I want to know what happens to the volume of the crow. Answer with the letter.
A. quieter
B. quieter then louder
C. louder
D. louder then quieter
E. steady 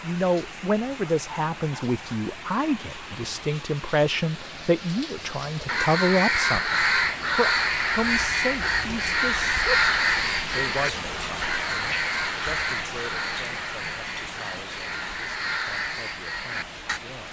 A.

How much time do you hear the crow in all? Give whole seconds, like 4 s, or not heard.
11 s.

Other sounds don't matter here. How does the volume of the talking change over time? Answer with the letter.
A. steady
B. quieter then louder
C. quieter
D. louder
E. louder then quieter
C.